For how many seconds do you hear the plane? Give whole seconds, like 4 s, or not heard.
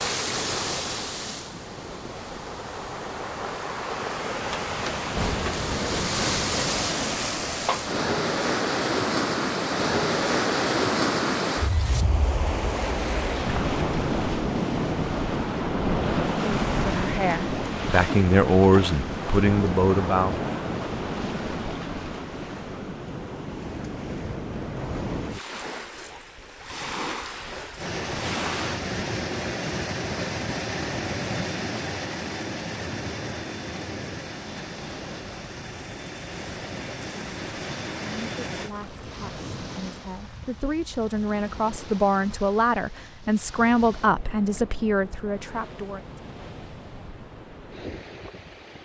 11 s.